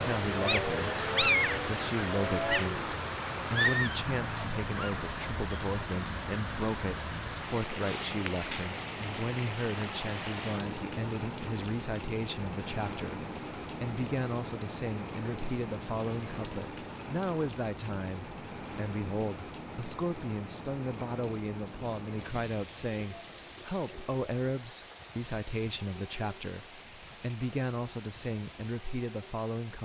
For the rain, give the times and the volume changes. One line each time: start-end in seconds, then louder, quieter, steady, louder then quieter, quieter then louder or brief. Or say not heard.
0.0-29.7 quieter.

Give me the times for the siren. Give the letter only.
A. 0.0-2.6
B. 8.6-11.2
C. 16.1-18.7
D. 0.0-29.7
A.